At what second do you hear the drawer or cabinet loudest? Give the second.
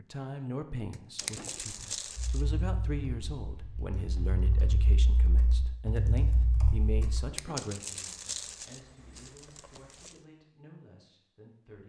1 s.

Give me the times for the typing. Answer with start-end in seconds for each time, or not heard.
2.1-7.2.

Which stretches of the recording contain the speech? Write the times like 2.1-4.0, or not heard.
0.0-11.8.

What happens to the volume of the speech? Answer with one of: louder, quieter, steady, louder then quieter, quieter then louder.
quieter.